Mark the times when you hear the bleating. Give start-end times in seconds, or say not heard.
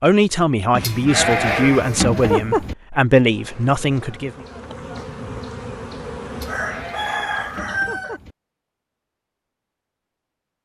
0.7-2.8, 6.3-8.3.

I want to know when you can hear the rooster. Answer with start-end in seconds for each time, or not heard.
6.5-8.2.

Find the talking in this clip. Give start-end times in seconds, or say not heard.
0.0-4.4.